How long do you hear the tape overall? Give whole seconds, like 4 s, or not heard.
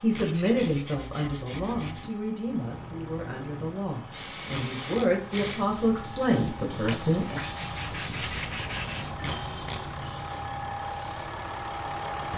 2 s.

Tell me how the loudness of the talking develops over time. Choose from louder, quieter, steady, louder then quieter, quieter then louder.
quieter then louder.